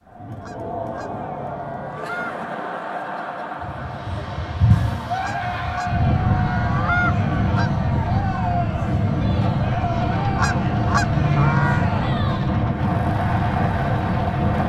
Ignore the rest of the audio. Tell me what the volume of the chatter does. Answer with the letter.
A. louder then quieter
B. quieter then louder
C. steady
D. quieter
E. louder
C.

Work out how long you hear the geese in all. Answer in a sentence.
You can hear the geese for 6 seconds altogether.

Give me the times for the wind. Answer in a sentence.
You can hear the wind from 3.6 to 14.6 s.